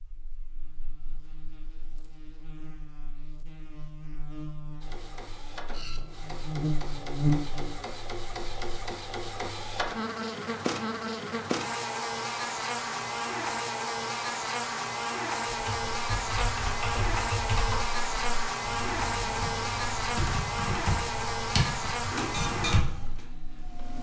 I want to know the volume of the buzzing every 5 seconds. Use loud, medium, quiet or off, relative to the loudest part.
quiet, loud, loud, loud, loud.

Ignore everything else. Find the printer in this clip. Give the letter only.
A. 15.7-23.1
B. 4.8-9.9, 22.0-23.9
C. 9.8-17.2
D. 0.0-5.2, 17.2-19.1
B.